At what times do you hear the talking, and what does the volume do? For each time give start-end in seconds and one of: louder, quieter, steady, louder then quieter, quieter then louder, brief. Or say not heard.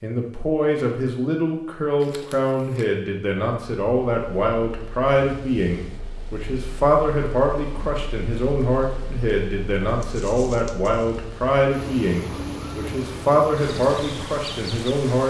0.0-15.2 steady.